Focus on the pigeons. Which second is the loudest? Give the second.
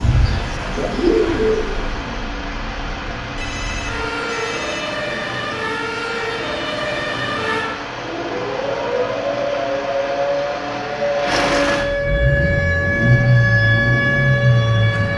1 s.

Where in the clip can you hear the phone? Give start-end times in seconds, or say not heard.
3.4-5.0.